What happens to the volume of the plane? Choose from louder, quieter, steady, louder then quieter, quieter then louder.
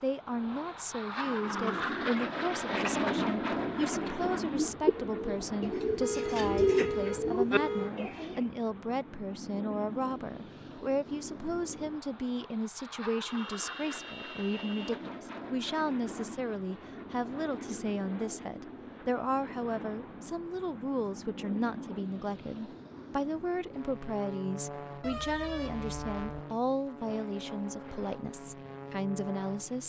quieter.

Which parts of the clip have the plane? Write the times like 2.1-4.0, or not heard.
0.0-29.8.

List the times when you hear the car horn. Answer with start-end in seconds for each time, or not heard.
6.0-8.0, 13.2-15.0, 25.0-26.4.